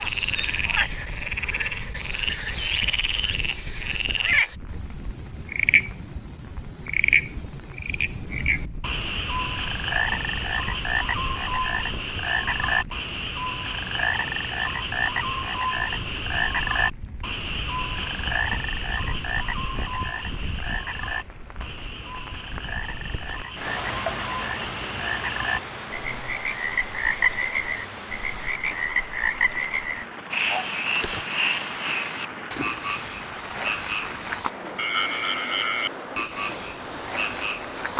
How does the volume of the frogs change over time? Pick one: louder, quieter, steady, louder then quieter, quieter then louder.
steady.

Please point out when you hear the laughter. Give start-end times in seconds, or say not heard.
not heard.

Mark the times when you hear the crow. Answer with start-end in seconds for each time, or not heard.
not heard.